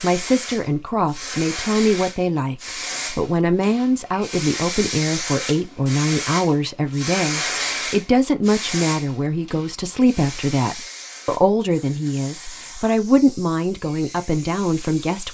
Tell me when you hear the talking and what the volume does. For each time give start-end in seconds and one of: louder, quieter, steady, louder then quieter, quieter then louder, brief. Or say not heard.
0.0-15.2 steady.